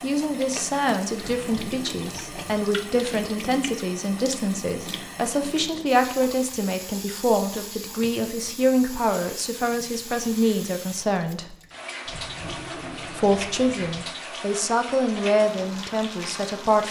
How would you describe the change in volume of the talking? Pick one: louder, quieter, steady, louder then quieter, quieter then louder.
steady.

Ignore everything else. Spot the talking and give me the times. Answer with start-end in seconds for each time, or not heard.
0.0-11.6, 13.2-16.8.